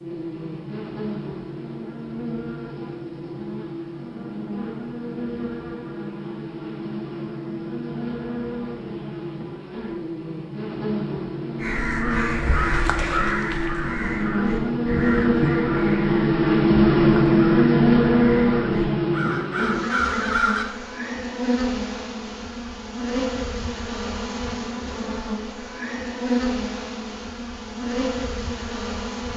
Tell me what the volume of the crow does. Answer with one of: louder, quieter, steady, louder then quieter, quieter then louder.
quieter then louder.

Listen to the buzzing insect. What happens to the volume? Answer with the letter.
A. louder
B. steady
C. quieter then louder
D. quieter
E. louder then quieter
E.